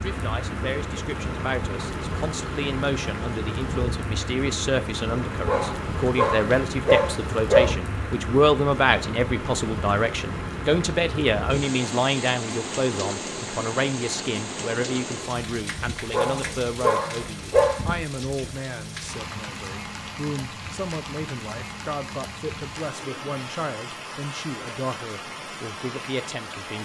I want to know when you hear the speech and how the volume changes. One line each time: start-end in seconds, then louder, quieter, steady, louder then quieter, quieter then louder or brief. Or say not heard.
0.0-26.7 louder then quieter.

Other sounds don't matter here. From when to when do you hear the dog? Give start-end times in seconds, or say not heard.
5.5-7.8, 16.1-17.8.